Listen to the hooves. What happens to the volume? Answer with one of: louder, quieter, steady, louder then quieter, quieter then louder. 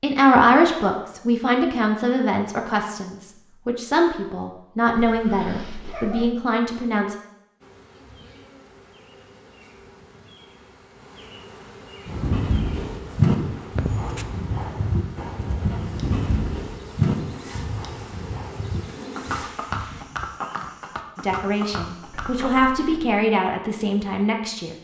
quieter.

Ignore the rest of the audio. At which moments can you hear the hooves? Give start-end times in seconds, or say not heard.
12.1-22.6.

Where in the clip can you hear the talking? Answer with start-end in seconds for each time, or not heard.
0.0-7.2, 21.1-24.7.